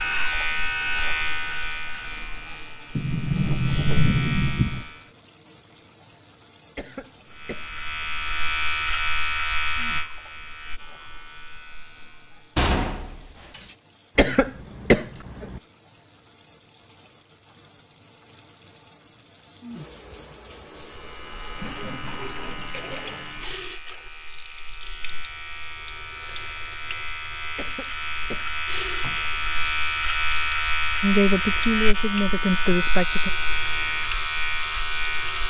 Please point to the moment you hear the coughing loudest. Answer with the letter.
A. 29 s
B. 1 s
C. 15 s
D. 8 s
C.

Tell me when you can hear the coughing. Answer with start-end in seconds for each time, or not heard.
6.8-8.2, 14.2-15.6, 27.6-28.5.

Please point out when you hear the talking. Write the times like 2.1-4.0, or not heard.
31.0-33.3.